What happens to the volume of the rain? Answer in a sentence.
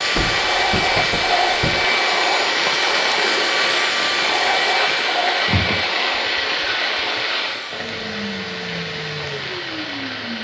The loudness of the rain goes down.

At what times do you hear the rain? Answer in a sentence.
The rain can be heard from 0.0 to 10.3 s.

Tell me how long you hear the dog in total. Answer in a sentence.
The dog can't be heard in this clip.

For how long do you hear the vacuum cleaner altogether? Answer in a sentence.
You can hear the vacuum cleaner for 10 seconds altogether.